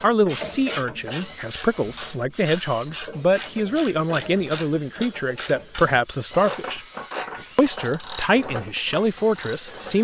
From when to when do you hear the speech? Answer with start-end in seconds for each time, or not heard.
0.0-6.8, 7.5-9.9.